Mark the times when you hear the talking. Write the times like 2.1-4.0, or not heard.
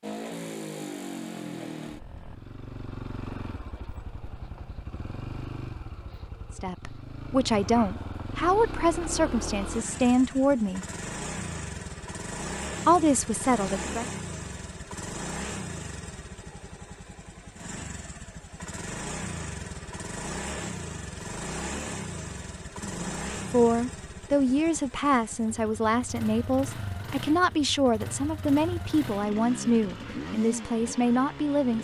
6.6-10.8, 12.8-14.1, 22.8-31.7.